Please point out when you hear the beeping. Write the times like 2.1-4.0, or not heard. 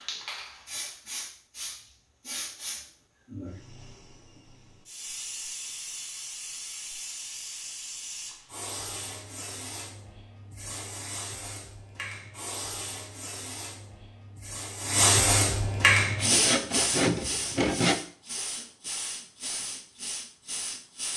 not heard.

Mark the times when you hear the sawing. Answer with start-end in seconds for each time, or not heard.
16.1-18.0.